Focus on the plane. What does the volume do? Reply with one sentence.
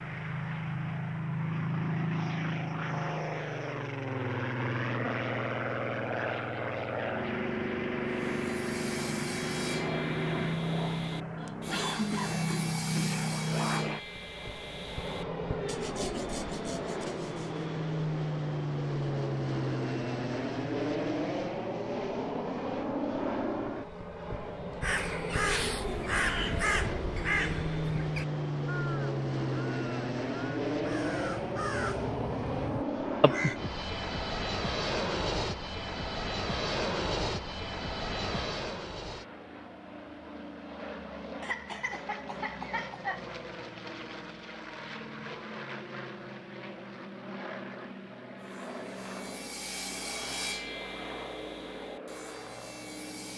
The loudness of the plane goes down.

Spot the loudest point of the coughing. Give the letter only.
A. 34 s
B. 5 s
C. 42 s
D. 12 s
D.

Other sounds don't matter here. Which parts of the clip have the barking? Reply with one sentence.
The barking can't be heard in this clip.